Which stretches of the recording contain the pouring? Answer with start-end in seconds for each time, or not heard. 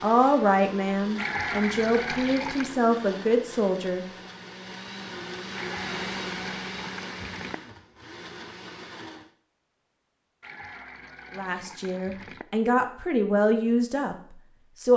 1.1-2.8, 5.5-7.5, 10.4-12.4.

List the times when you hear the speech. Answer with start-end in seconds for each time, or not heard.
0.0-4.0, 11.3-14.9.